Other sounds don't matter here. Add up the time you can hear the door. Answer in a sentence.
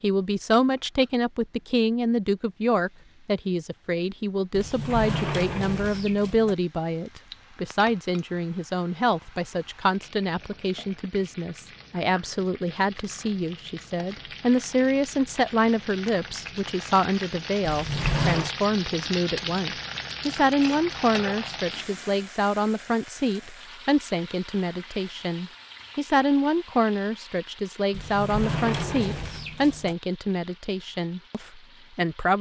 The door can be heard for 5 seconds in total.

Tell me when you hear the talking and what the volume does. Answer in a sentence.
The talking can be heard from 0.0 to 32.3 s, at a steady volume.